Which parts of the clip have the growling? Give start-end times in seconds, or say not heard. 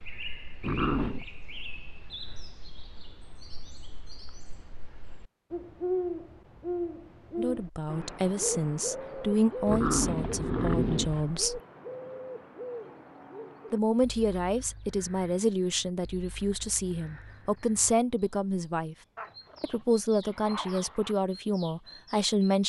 0.6-1.2, 9.7-11.2, 19.1-21.1.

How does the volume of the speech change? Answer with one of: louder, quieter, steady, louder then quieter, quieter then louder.
steady.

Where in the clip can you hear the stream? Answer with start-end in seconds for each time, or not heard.
not heard.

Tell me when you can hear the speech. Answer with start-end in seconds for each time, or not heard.
7.3-11.6, 13.7-18.9, 19.6-22.6.